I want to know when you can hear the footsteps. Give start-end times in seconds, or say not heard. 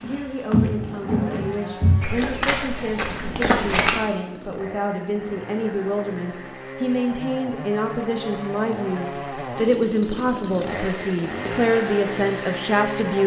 0.0-4.0.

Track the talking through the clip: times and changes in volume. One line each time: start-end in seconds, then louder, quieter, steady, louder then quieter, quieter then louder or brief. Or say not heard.
0.1-13.2 louder.